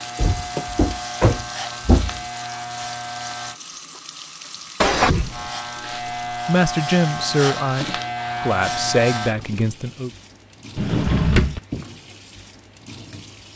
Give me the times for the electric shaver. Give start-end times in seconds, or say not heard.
0.0-3.6, 5.3-9.3.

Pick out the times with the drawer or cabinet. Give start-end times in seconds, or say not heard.
0.1-2.2, 4.8-5.5, 10.8-11.6.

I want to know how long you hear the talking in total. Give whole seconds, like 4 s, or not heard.
4 s.